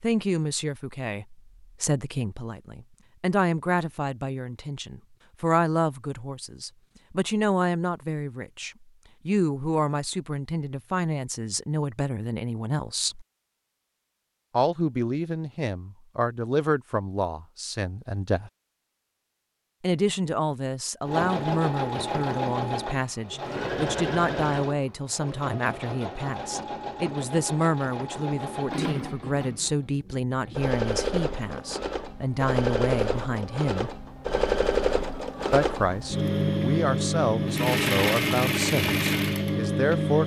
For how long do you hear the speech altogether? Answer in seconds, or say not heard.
36 s.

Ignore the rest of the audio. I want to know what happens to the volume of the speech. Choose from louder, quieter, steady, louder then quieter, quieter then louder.
steady.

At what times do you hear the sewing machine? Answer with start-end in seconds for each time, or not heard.
21.1-40.2.